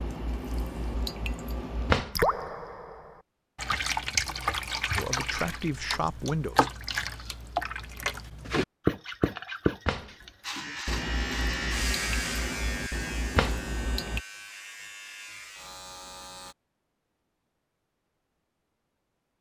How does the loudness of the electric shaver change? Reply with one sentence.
The volume of the electric shaver goes down.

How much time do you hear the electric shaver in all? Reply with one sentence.
You can hear the electric shaver for 6 seconds altogether.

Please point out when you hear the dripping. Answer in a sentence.
The dripping can be heard from 0.0 to 14.2 s.